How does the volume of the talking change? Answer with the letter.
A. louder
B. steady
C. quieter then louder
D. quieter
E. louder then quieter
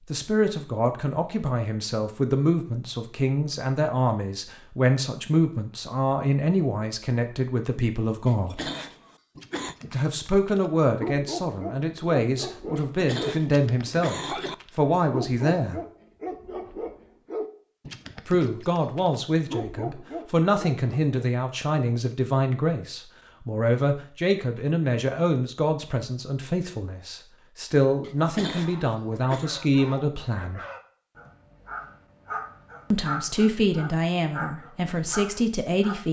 B.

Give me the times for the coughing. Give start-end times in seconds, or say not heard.
8.2-9.8, 12.8-14.6, 28.0-29.5.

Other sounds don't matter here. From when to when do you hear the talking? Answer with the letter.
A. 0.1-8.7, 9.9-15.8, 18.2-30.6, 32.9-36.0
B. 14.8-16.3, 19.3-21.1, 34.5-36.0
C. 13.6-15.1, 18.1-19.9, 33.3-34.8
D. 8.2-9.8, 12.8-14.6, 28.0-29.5
A.